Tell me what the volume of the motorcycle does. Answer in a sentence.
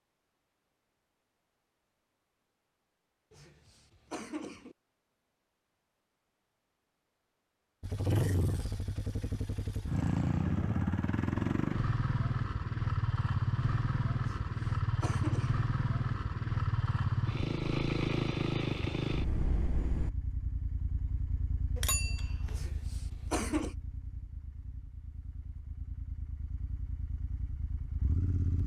The loudness of the motorcycle goes down.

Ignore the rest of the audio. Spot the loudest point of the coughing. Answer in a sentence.
The volume of the coughing peaks at 23 seconds.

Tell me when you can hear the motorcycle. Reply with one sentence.
The motorcycle can be heard from 7.8 to 28.6 s.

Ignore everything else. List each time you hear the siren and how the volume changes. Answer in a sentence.
You can't hear the siren here.